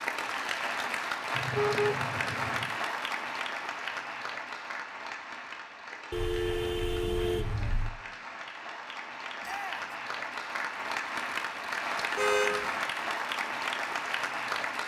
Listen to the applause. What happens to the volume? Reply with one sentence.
The volume of the applause goes down, then up.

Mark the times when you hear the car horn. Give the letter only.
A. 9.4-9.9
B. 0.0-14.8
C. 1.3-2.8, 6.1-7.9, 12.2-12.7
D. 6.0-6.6
C.